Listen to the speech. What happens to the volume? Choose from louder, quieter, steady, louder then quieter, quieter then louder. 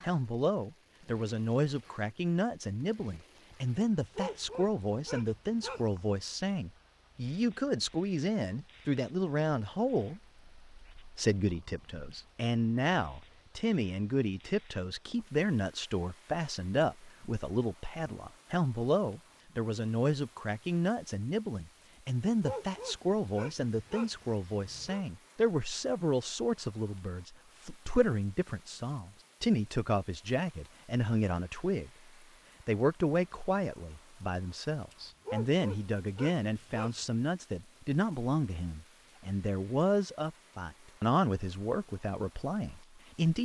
steady.